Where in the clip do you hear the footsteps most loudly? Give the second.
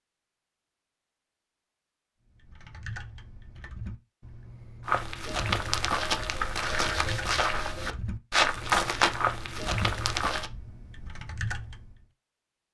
9 s.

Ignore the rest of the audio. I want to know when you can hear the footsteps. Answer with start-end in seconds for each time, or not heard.
4.8-10.5.